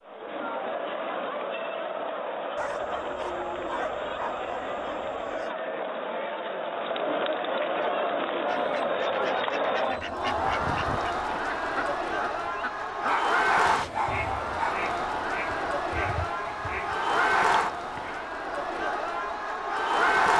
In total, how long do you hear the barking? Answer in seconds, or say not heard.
5 s.